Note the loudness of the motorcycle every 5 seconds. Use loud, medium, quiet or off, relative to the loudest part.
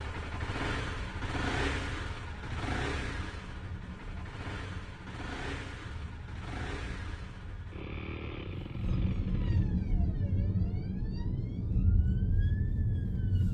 loud, medium, off.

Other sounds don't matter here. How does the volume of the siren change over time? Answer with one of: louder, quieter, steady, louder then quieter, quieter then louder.
louder.